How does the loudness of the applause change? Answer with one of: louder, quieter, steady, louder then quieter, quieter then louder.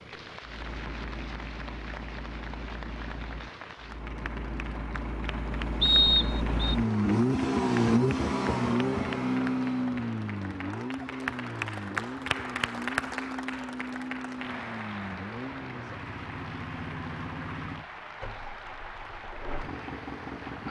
louder then quieter.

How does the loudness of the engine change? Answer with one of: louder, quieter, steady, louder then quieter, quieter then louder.
louder then quieter.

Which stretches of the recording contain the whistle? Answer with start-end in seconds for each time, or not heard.
5.8-6.8.